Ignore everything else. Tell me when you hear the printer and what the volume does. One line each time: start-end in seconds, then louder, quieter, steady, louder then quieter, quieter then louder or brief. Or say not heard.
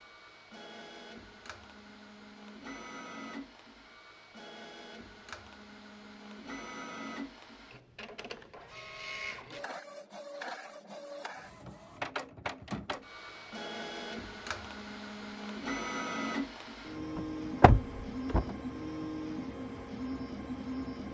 0.0-21.0 louder.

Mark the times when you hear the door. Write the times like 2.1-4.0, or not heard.
17.1-18.6.